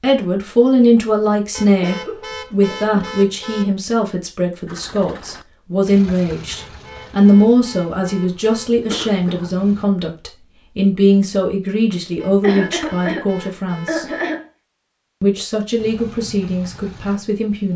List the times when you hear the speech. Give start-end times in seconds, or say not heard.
0.0-14.1, 15.2-17.7.